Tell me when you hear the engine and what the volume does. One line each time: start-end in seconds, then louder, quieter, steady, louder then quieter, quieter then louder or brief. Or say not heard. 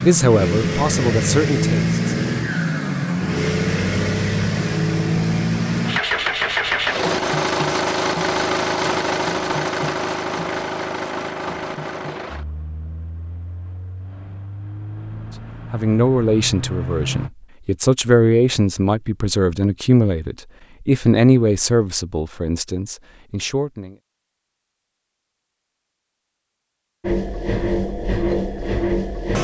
0.0-17.3 quieter
27.0-29.3 brief.